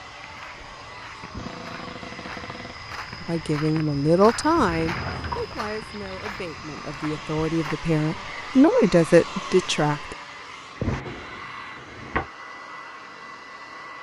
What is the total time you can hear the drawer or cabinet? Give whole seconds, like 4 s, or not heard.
4 s.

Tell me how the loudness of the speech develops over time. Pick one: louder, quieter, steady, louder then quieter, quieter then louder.
quieter then louder.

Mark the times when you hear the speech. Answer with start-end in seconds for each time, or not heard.
3.2-10.2.